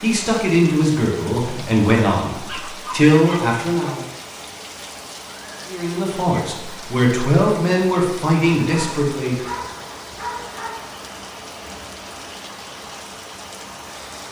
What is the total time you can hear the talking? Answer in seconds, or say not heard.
8 s.